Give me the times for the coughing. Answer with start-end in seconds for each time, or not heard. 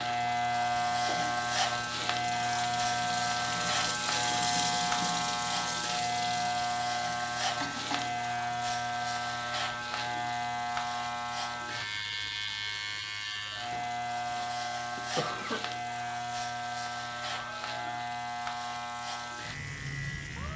0.9-1.4, 7.6-8.2, 13.7-15.6.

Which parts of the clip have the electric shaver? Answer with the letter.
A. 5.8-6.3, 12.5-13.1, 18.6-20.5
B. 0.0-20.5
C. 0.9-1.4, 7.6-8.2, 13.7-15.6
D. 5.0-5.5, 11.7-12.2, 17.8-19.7
B.